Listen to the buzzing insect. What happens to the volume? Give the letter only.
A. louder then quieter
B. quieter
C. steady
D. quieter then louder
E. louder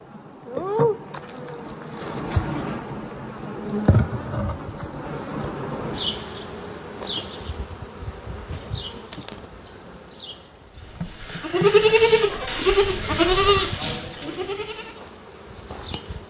B.